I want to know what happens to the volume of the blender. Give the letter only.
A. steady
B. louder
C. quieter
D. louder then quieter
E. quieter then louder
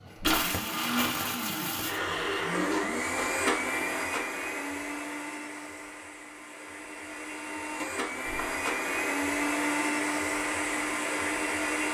E.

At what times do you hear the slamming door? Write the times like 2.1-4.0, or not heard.
0.1-0.6, 8.2-8.7.